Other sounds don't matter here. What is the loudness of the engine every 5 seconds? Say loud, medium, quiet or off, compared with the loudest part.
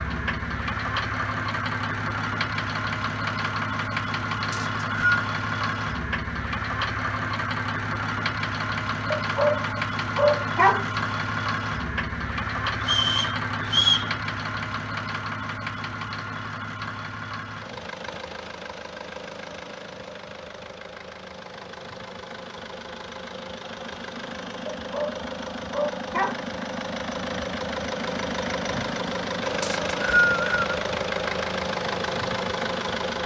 loud, loud, loud, medium, medium, loud, loud.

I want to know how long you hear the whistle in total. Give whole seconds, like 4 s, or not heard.
3 s.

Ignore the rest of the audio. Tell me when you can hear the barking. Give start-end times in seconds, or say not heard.
9.1-10.8, 24.8-26.4.